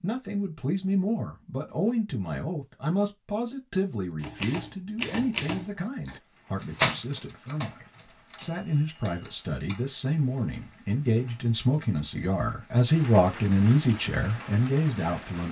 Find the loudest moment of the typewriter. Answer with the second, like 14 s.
7 s.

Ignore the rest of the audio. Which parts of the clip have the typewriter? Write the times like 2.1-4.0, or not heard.
4.2-9.8.